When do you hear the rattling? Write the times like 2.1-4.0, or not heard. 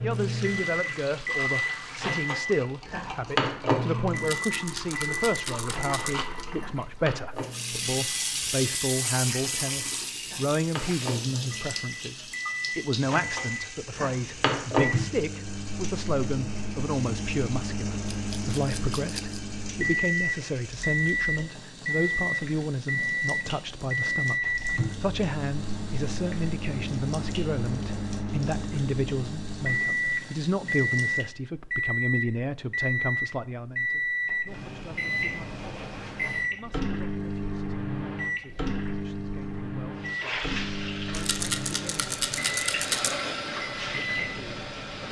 4.2-6.2, 18.1-19.4, 41.1-43.1.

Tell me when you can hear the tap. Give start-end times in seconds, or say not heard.
0.0-31.3, 40.0-45.0.